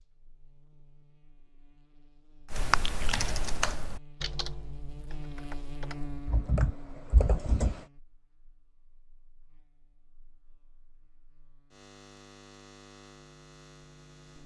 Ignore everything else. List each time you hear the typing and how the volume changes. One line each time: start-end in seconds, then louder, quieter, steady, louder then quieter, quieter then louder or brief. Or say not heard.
2.5-7.8 quieter then louder.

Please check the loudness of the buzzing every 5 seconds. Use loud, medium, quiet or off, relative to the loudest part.
medium, loud, medium.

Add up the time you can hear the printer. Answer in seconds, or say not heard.
not heard.